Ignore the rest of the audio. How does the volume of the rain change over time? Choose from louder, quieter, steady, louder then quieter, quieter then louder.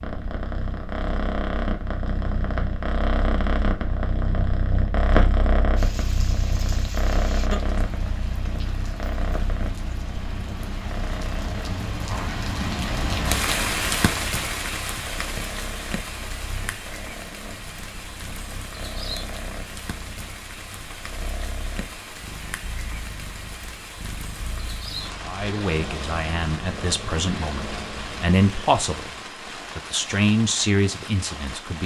louder then quieter.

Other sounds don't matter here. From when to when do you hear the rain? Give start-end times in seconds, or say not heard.
5.8-31.8.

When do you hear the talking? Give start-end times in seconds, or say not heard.
25.2-31.8.